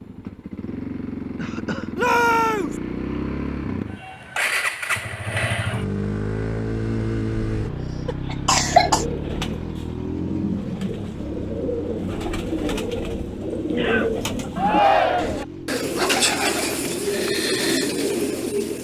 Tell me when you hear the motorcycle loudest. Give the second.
5 s.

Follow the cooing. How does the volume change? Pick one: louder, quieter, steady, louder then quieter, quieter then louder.
louder.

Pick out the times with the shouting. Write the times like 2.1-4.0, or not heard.
1.9-2.8, 14.6-15.4.